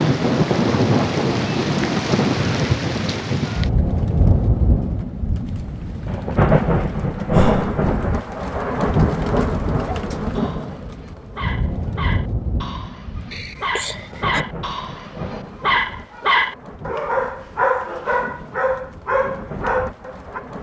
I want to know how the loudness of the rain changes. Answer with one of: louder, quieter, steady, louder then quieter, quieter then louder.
quieter.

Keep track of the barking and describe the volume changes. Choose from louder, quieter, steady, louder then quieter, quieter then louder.
louder.